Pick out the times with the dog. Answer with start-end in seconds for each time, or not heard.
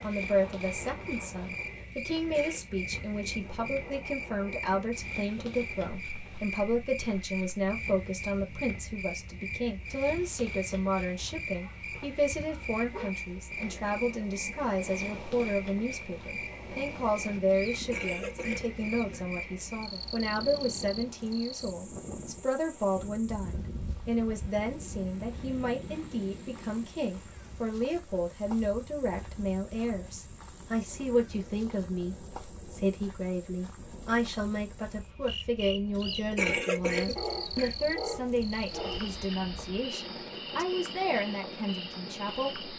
11.5-13.2, 37.1-39.1.